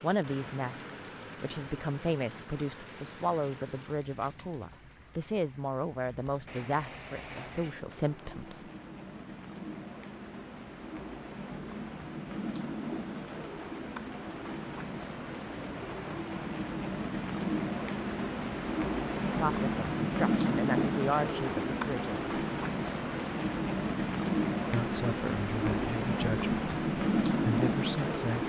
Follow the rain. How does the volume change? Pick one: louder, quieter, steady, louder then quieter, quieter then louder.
louder.